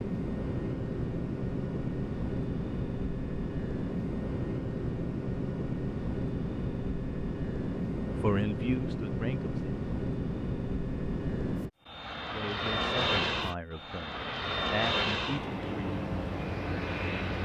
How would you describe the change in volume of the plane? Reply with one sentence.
The loudness of the plane stays about the same.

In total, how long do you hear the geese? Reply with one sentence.
You can't hear the geese here.